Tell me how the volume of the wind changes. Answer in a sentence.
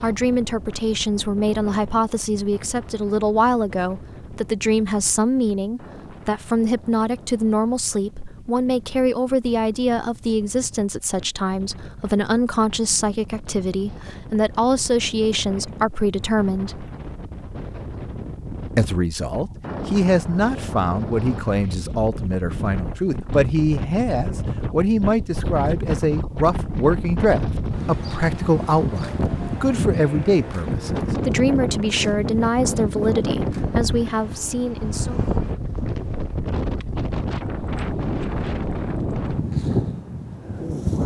The volume of the wind goes up.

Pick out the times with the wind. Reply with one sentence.
You can hear the wind from 0.0 to 41.0 s.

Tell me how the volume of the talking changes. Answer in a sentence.
The volume of the talking stays about the same.